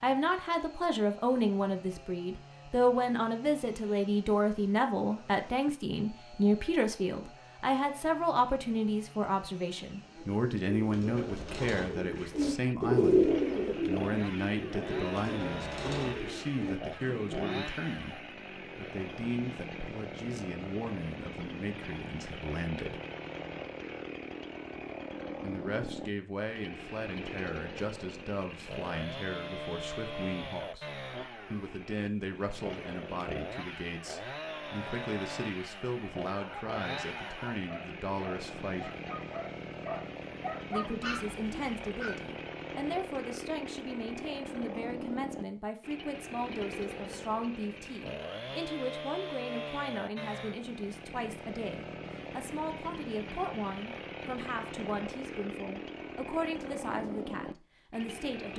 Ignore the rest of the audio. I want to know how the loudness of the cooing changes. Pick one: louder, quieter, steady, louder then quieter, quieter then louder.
louder then quieter.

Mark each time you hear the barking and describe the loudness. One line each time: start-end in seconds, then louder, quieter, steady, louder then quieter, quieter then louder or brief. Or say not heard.
36.3-42.1 louder.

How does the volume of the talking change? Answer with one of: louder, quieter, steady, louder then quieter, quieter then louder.
quieter.